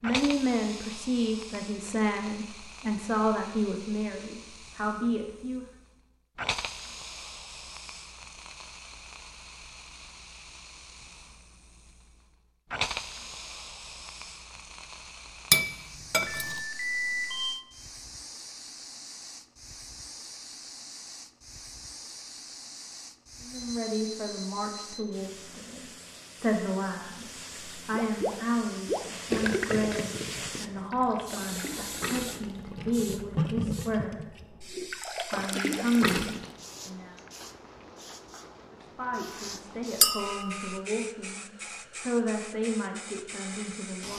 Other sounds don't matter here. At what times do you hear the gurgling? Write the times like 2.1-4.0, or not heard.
27.9-36.5.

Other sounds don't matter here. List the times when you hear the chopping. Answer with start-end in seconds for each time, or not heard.
not heard.